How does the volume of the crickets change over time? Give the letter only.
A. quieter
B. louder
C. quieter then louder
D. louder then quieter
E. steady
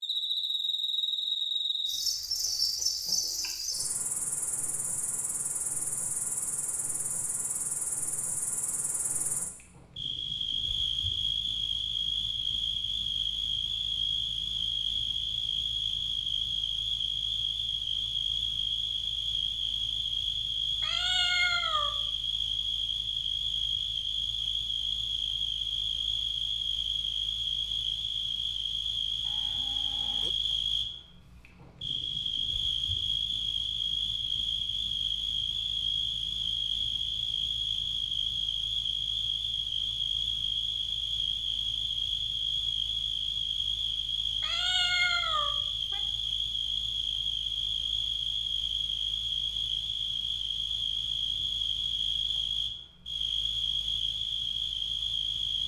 E.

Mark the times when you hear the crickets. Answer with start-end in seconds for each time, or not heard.
0.0-55.6.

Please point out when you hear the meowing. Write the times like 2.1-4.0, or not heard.
20.8-21.9, 44.4-46.0.